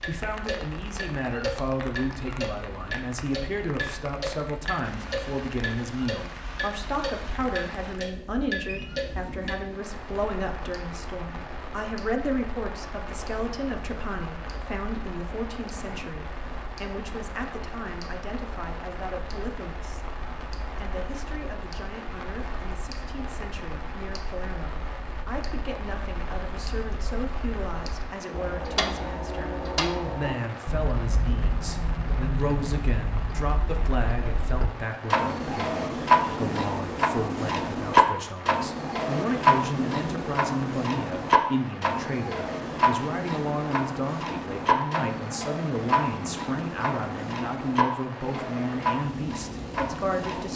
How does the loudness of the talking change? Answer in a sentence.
The loudness of the talking goes down, then up.